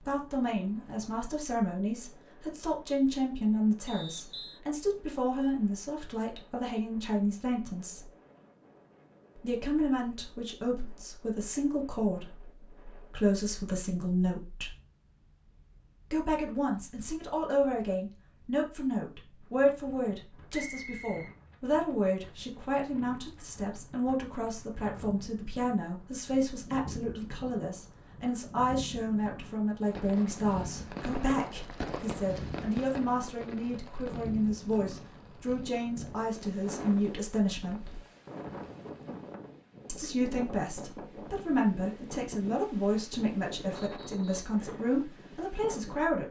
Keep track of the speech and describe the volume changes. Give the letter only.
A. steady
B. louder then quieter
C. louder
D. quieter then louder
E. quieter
A.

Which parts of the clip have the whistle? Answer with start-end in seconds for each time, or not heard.
3.9-4.6, 20.5-21.4, 43.8-44.5.